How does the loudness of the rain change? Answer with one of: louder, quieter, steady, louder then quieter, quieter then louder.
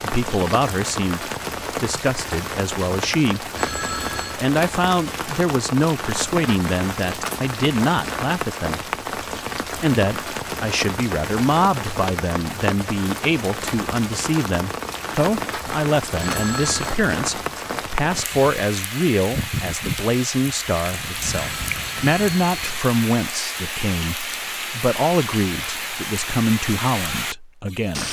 steady.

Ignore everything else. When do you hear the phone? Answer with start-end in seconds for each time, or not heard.
3.5-4.4, 16.1-17.0, 21.1-22.8.